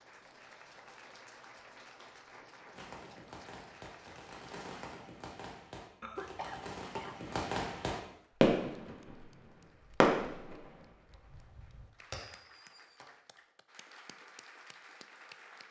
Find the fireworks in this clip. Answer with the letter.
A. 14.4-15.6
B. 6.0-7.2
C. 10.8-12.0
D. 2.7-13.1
D.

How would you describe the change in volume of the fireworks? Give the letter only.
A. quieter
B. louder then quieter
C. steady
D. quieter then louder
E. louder
B.